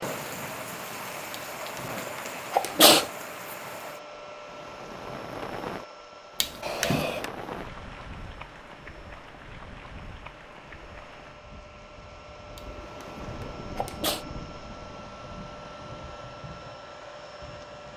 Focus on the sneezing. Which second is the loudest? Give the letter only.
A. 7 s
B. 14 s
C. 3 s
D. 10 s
C.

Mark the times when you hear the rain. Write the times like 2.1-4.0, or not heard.
0.0-17.9.